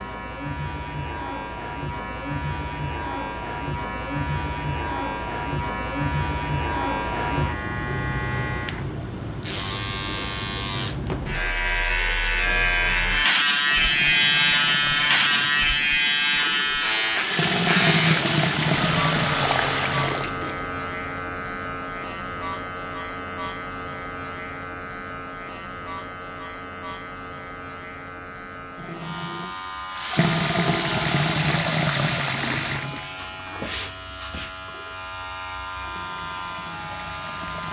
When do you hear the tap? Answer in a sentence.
You can hear the tap from 13.7 to 20.6 s and from 28.8 to 37.6 s.